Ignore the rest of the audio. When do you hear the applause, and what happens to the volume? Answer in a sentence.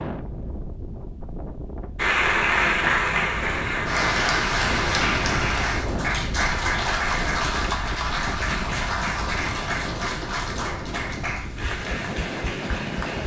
The applause can be heard from 1.9 to 13.2 s, getting quieter.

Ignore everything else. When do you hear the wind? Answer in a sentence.
You can hear the wind from 0.0 to 13.2 s.